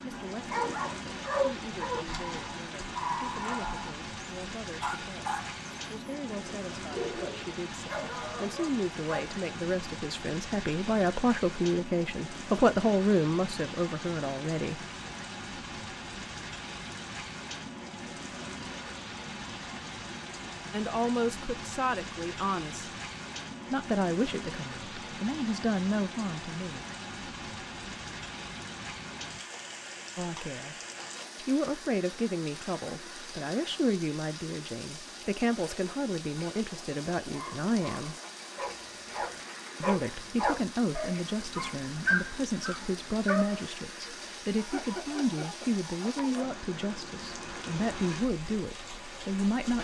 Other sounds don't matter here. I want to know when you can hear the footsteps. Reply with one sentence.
The footsteps can't be heard in this clip.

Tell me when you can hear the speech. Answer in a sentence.
You can hear the speech from 0.0 to 14.8 s, from 20.7 to 22.9 s, from 23.7 to 26.8 s, from 30.1 to 30.8 s, from 31.4 to 38.1 s and from 39.8 to 49.7 s.